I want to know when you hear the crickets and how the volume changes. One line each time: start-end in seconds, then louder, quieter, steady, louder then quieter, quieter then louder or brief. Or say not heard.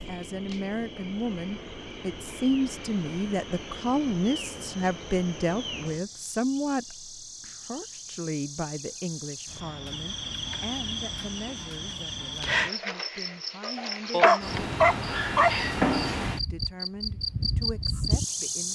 0.0-18.7 louder.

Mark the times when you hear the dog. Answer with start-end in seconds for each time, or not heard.
14.1-15.6.